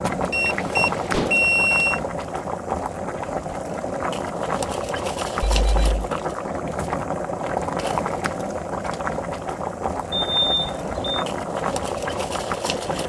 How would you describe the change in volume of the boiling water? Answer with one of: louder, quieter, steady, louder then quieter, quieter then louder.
steady.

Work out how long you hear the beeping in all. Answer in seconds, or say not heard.
3 s.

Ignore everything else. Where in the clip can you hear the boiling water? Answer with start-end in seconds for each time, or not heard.
0.0-13.0.